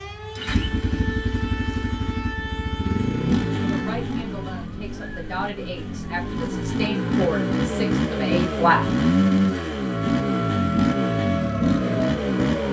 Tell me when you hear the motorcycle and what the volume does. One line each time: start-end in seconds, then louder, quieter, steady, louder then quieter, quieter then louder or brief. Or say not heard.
0.0-12.6 louder.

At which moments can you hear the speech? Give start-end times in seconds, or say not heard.
3.5-8.8.